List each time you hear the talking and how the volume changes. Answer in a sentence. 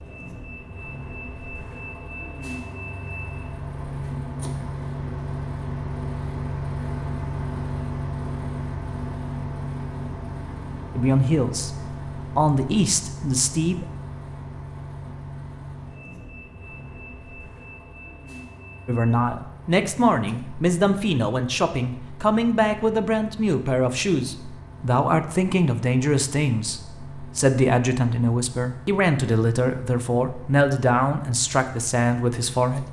The talking can be heard briefly from 10.9 to 13.8 s; and from 18.9 to 32.8 s, at a steady volume.